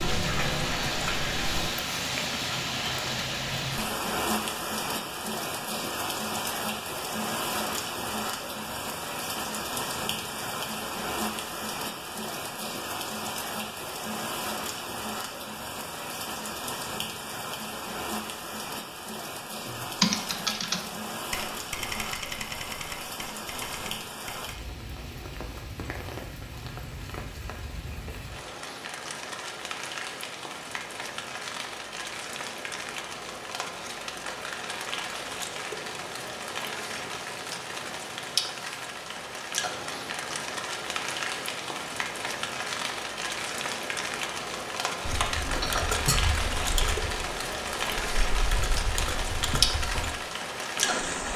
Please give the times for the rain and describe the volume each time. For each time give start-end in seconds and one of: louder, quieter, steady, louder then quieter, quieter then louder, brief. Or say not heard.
0.0-51.3 quieter then louder.